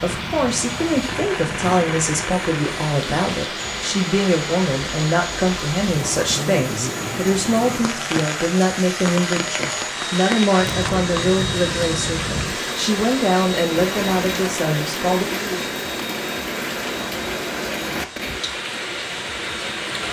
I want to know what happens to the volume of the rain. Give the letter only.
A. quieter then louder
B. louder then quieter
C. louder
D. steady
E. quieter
D.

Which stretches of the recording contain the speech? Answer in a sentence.
The speech can be heard from 0.0 to 15.2 s.